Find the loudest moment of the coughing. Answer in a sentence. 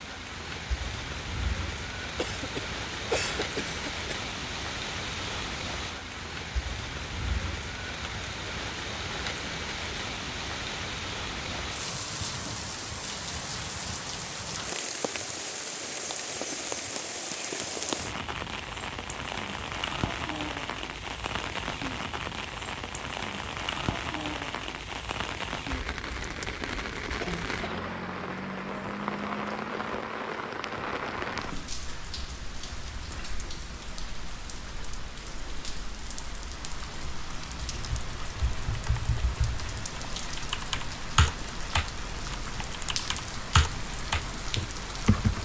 The volume of the coughing peaks at 3 seconds.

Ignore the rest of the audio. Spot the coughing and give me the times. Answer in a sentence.
The coughing can be heard from 2.1 to 4.2 s and from 27.2 to 27.9 s.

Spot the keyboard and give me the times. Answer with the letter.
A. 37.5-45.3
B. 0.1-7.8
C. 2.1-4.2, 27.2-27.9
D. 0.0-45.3
A.